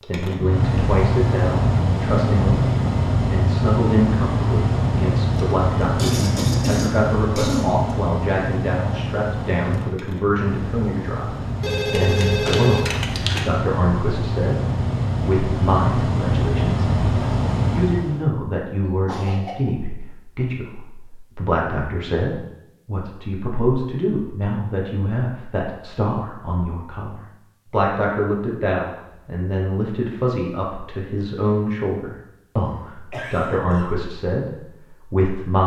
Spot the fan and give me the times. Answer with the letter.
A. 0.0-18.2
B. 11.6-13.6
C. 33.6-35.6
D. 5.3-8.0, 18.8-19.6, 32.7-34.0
A.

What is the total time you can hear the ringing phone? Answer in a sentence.
You can hear the ringing phone for 2 seconds altogether.